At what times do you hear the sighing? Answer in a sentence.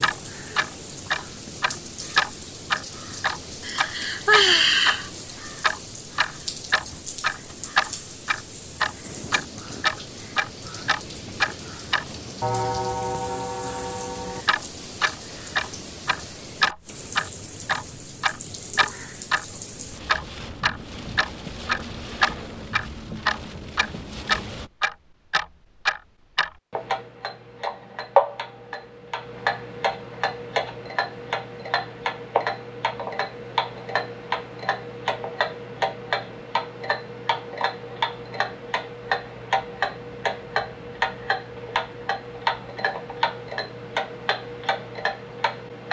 The sighing can be heard from 3.6 to 5.1 s.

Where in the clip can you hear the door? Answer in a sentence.
The door can't be heard in this clip.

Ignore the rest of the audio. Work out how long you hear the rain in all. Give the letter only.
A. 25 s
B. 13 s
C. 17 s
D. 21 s
A.